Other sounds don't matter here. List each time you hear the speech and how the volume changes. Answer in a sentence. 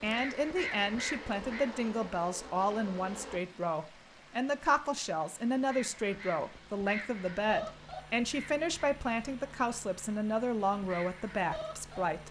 You can hear the speech from 0.0 to 12.2 s, at a steady volume.